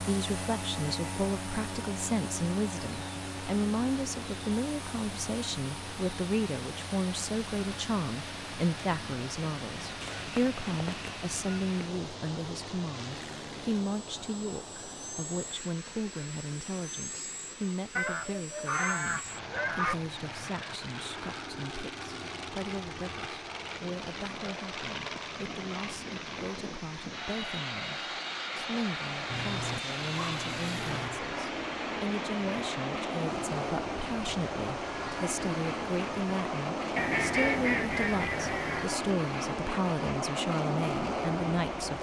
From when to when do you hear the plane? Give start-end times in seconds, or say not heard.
0.0-41.9.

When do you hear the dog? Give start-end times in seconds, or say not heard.
29.2-31.2.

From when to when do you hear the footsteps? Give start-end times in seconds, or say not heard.
not heard.